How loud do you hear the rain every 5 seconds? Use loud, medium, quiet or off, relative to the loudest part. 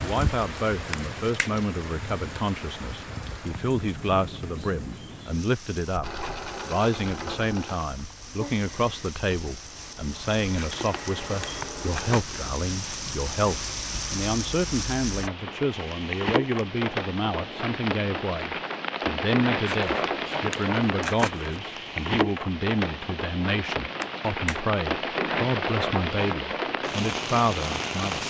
medium, quiet, medium, loud, loud, loud.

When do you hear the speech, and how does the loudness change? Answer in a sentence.
The speech can be heard from 0.0 to 28.2 s, at a steady volume.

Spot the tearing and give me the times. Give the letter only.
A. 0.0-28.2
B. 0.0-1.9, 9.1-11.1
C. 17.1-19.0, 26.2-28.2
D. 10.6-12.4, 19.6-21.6
D.